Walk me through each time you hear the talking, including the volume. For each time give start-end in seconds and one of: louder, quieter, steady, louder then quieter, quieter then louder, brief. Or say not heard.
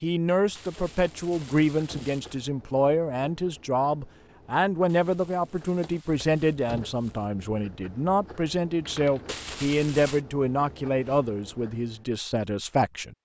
0.0-13.2 steady.